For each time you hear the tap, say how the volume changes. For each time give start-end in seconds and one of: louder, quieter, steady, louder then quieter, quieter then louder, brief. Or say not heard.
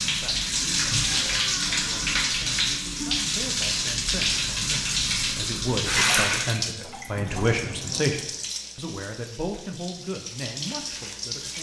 0.0-11.5 quieter.